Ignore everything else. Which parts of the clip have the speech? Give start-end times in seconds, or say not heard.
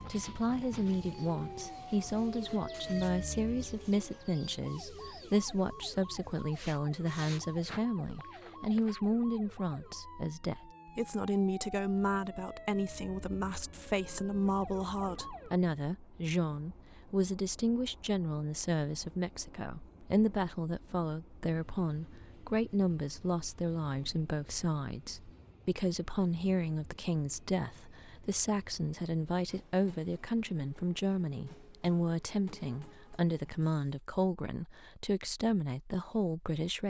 0.0-36.8.